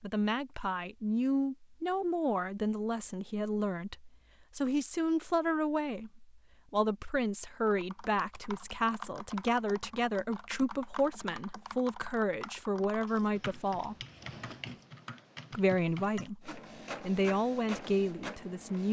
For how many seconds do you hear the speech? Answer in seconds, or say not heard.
17 s.